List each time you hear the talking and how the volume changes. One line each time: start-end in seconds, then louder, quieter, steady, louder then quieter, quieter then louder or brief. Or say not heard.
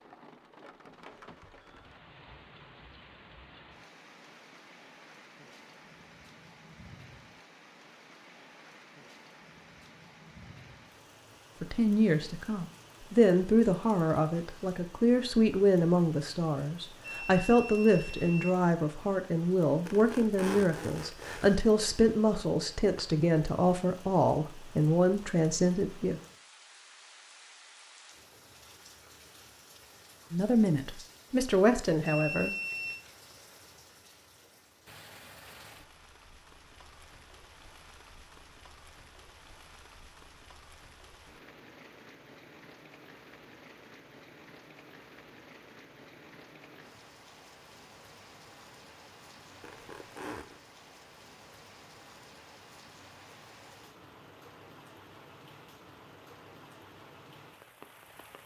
11.6-26.2 steady
30.3-32.5 brief.